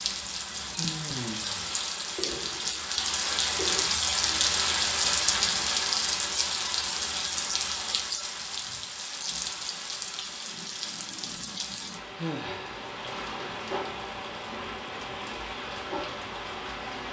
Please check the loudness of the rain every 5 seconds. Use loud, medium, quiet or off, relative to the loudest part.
loud, loud, medium, medium.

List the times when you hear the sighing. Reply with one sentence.
The sighing can be heard from 0.8 to 1.8 s and from 12.2 to 12.8 s.